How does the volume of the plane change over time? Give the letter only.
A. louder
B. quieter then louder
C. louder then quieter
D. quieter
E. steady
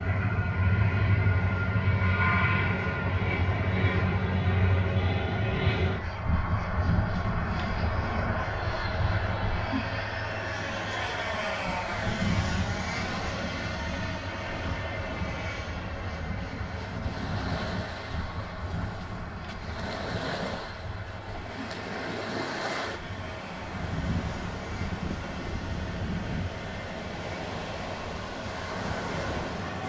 D.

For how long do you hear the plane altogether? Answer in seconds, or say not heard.
30 s.